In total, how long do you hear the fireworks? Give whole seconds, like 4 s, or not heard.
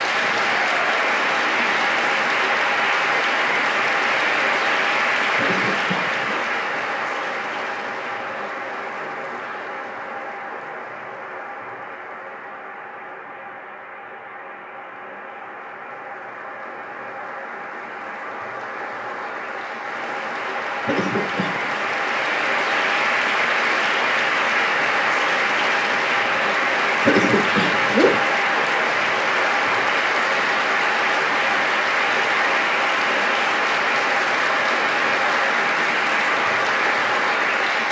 not heard.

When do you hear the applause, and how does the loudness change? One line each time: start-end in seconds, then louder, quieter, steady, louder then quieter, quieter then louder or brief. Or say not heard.
0.0-37.8 quieter then louder.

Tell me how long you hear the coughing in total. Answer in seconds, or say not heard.
3 s.